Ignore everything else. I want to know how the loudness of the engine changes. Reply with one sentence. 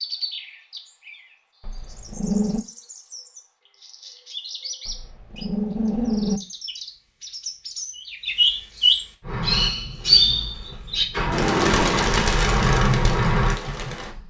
The volume of the engine goes up.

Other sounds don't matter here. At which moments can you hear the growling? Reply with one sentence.
You can hear the growling from 1.6 to 2.6 s, from 4.8 to 6.4 s and from 10.7 to 12.2 s.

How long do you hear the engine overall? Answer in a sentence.
You can hear the engine for 5 seconds altogether.